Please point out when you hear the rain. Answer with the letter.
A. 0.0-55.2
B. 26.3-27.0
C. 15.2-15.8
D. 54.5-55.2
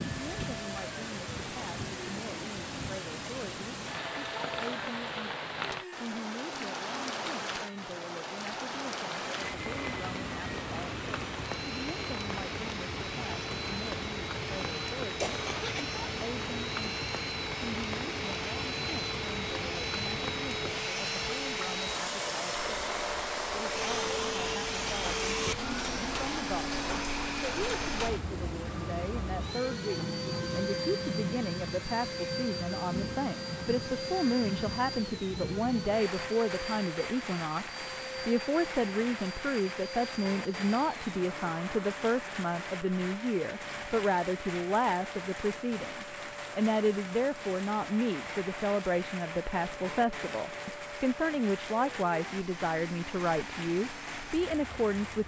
A.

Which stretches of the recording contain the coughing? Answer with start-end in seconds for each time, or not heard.
15.2-15.8.